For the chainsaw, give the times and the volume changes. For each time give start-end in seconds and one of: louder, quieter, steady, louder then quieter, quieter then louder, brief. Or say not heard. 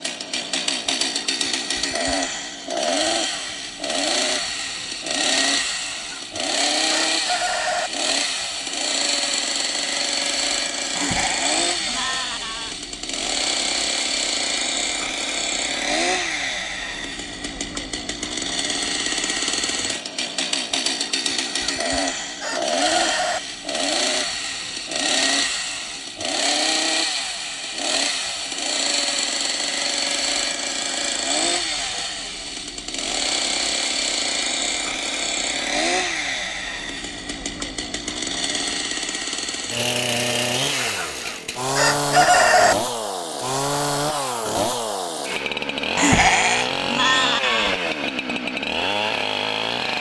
0.0-49.9 steady.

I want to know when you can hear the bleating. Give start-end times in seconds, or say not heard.
10.9-12.8, 46.0-47.8.